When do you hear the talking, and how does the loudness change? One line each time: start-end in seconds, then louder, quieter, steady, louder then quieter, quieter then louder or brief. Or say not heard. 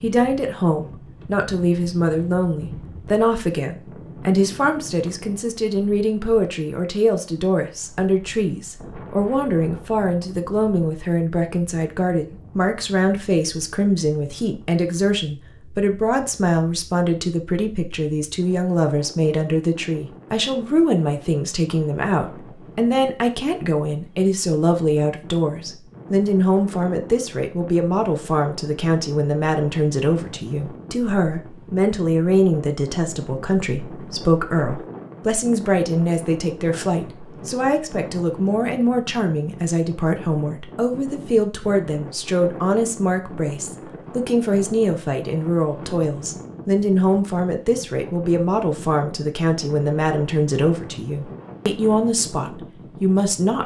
0.0-53.6 steady.